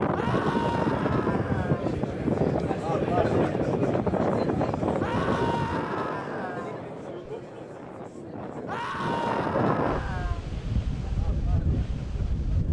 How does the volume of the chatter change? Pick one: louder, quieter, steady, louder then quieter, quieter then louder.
quieter.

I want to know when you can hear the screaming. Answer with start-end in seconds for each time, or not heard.
0.1-1.9, 5.0-6.8, 8.7-10.4.